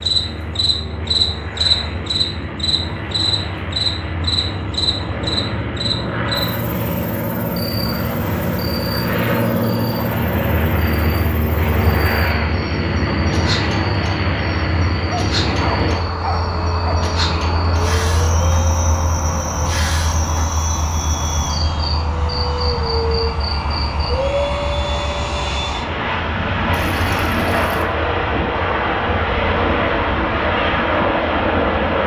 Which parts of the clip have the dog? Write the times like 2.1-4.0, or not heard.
15.1-16.9.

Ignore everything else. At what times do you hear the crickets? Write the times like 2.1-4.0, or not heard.
0.0-24.1.